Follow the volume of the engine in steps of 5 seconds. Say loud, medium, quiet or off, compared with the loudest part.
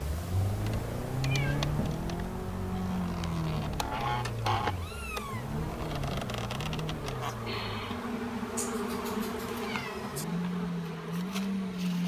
loud, medium, loud.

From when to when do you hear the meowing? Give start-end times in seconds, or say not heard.
0.6-1.9, 4.6-5.5, 8.6-10.2.